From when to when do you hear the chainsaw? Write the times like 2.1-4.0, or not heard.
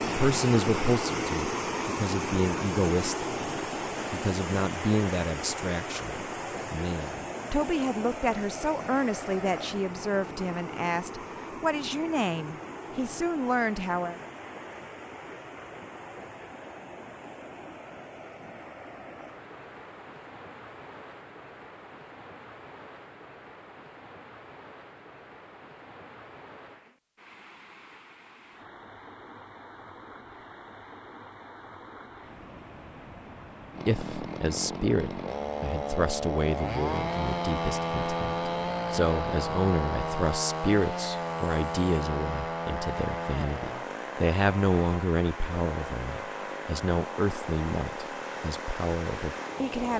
33.8-49.9.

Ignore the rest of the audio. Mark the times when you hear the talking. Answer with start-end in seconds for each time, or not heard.
0.0-3.2, 4.1-14.2, 33.9-49.9.